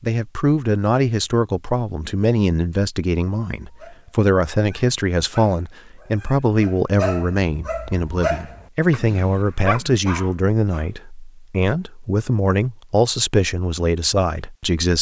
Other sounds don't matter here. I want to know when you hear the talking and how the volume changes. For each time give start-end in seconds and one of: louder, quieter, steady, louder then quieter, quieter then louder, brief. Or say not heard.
0.0-14.9 steady.